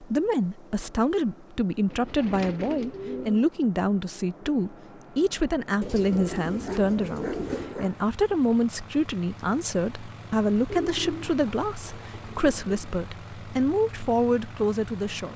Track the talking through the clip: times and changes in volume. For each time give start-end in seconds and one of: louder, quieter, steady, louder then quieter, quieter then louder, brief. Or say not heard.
0.0-15.3 steady.